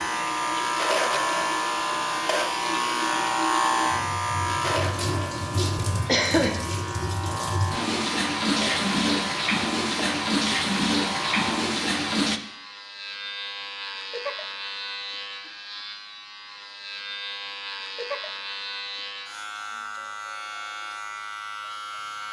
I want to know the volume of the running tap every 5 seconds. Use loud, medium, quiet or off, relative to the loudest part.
medium, loud, loud, off, off.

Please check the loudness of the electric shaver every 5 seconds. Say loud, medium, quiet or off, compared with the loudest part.
loud, medium, medium, medium, medium.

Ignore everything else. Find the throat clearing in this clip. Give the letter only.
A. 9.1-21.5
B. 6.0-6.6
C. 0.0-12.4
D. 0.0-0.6
B.